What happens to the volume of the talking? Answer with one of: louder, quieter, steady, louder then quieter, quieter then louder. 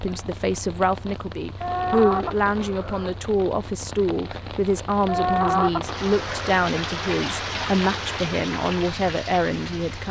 steady.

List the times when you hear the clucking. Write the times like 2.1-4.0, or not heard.
1.6-3.2, 5.0-6.6.